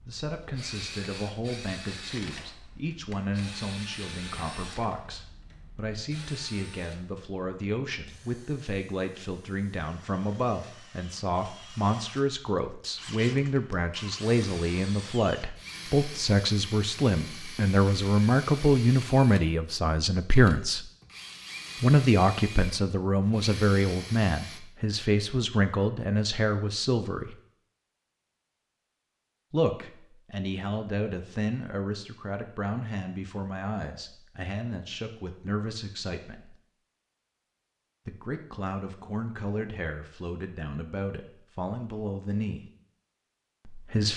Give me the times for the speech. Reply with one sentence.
You can hear the speech from 0.1 to 20.9 s, from 21.8 to 27.4 s, from 29.5 to 36.5 s, from 38.0 to 42.6 s and from 43.6 to 44.1 s.